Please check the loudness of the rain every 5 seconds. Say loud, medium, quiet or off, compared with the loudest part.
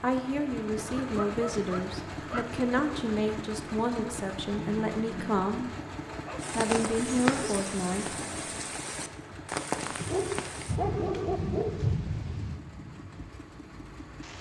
off, loud, loud.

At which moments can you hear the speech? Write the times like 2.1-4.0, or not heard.
0.0-5.7, 6.5-8.6.